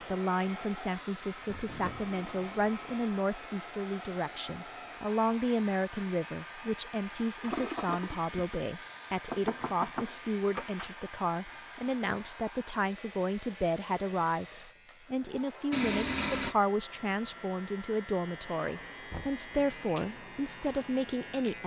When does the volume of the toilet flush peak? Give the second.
16 s.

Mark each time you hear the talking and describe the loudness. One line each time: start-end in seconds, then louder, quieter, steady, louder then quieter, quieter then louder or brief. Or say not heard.
0.1-21.6 steady.